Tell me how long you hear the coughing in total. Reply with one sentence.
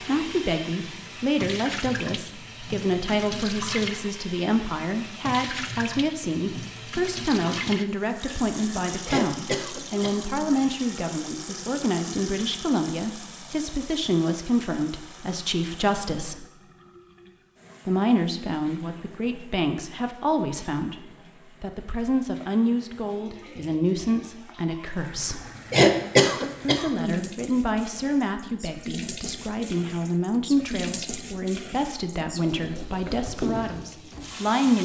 You can hear the coughing for 3 seconds altogether.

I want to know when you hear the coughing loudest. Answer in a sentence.
The loudest moment of the coughing is at 26 seconds.